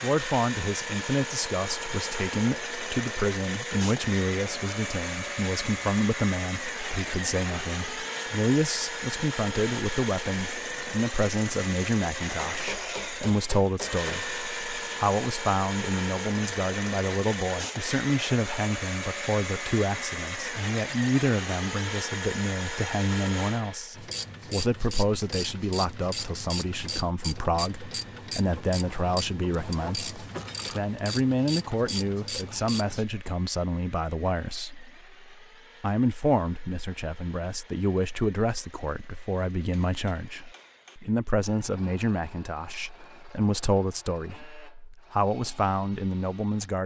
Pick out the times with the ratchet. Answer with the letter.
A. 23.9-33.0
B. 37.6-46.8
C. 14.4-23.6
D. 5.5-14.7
A.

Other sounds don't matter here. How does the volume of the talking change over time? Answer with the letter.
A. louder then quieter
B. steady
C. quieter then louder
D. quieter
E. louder
B.